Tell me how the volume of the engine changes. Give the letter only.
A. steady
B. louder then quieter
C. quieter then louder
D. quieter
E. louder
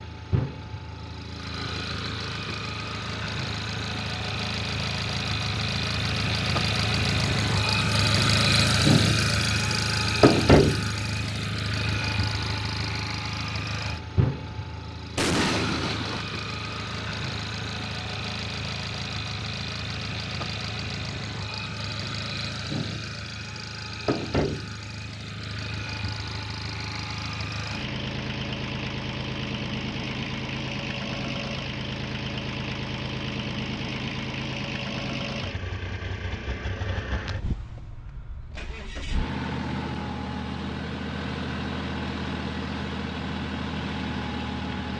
D.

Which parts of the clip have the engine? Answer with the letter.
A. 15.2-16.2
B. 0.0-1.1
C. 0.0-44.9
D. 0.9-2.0
C.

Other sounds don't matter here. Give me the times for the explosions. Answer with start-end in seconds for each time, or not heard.
15.2-16.2.